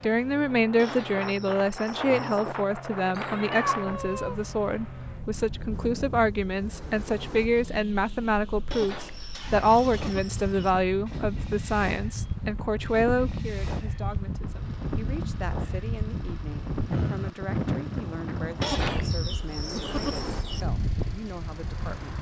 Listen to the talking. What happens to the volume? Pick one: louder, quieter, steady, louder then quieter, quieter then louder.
quieter.